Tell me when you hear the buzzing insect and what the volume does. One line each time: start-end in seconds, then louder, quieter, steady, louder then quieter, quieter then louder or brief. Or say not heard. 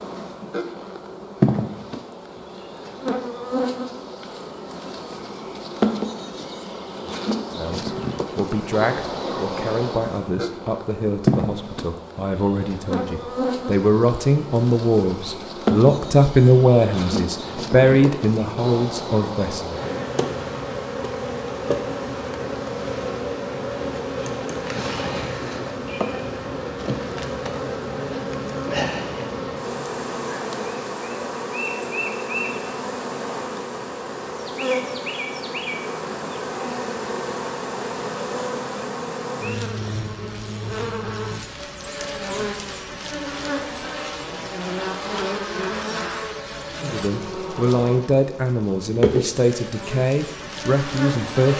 0.0-51.5 steady.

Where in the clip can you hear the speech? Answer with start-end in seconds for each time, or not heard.
7.5-19.9, 46.8-51.5.